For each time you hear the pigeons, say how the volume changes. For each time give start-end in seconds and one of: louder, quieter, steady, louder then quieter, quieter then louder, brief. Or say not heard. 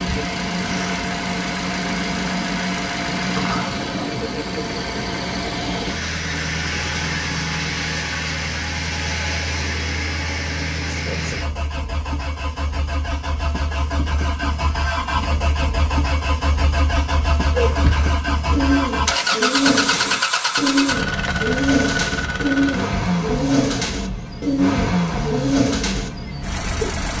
17.6-26.9 steady.